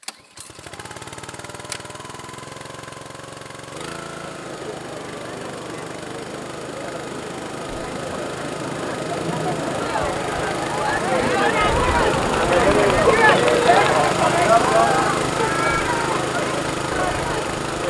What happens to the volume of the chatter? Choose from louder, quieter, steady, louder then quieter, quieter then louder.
louder then quieter.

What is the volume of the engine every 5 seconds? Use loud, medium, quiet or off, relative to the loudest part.
medium, medium, loud, loud.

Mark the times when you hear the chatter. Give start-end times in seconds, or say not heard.
4.2-17.8.